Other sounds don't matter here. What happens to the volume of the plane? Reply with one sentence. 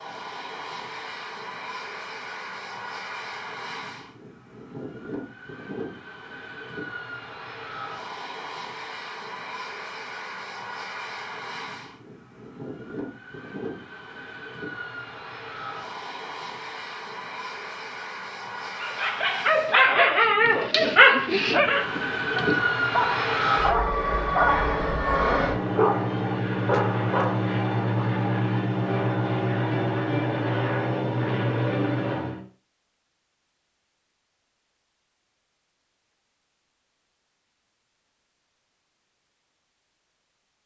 The volume of the plane goes up.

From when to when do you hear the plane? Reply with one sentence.
The plane can be heard from 0.0 to 32.4 s.